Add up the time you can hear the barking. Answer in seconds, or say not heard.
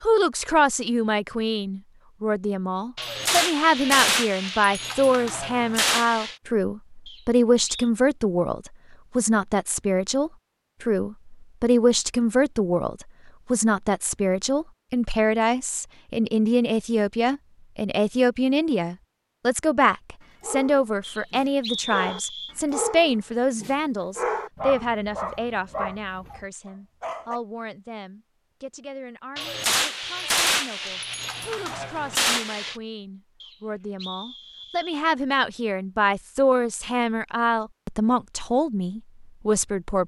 7 s.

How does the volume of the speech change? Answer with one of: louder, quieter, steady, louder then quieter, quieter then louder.
quieter then louder.